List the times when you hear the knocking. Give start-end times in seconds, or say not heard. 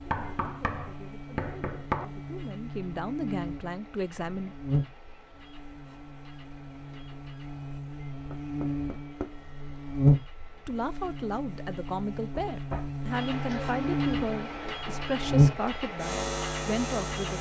0.1-2.0, 8.3-9.3, 12.5-13.7.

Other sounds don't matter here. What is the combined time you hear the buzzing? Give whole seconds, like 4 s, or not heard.
17 s.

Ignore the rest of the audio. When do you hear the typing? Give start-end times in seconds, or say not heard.
not heard.